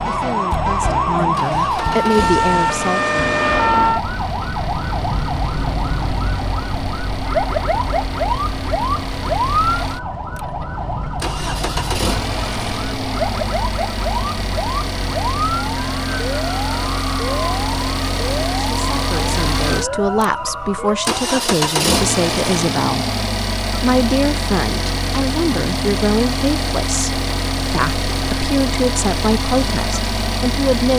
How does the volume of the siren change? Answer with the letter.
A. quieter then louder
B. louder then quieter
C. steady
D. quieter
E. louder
D.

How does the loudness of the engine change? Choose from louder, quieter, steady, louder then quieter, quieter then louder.
louder.